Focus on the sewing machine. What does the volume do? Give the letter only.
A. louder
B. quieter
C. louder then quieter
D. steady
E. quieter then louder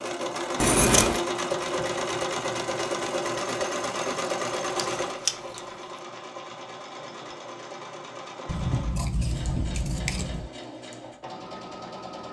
B.